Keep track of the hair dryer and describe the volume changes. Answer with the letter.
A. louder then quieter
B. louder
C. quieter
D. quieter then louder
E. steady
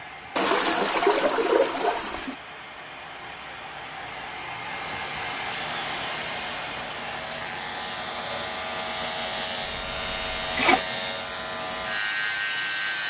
A.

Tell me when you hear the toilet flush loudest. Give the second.
1 s.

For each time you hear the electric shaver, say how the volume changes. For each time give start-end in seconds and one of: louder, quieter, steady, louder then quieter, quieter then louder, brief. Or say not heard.
4.7-13.0 louder.